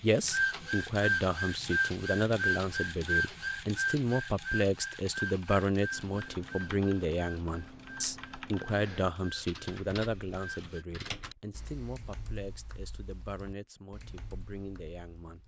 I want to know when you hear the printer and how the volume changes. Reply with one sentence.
You can hear the printer from 0.0 to 10.8 s, getting quieter.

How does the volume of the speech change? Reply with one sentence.
The volume of the speech goes down.